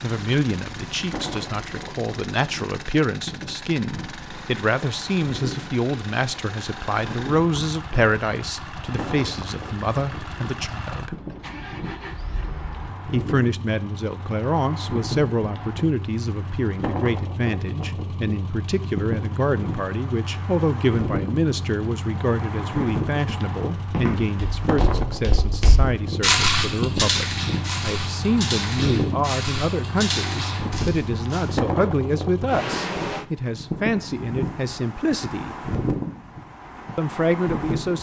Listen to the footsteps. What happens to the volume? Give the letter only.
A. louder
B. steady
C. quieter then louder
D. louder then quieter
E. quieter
D.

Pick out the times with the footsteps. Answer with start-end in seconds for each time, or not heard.
23.8-31.4.